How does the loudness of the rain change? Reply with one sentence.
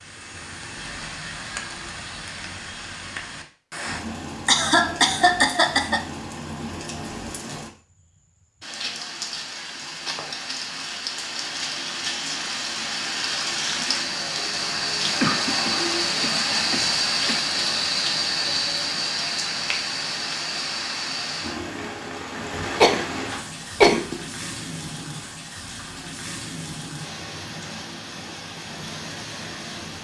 The volume of the rain goes up, then down.